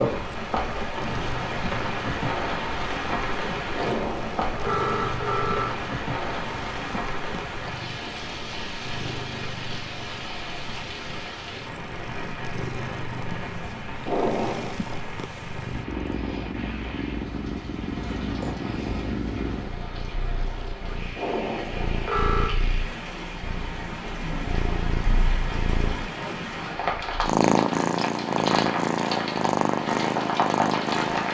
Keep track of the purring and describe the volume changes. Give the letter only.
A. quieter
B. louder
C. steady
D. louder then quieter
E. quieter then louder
B.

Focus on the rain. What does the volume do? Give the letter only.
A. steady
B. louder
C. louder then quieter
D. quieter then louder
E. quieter
D.